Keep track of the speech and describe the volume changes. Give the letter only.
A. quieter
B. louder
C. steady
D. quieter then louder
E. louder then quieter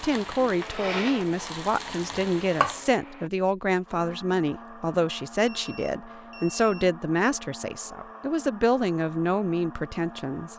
C.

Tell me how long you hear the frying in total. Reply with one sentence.
The frying can be heard for 3 seconds in total.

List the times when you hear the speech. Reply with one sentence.
You can hear the speech from 0.0 to 10.5 s.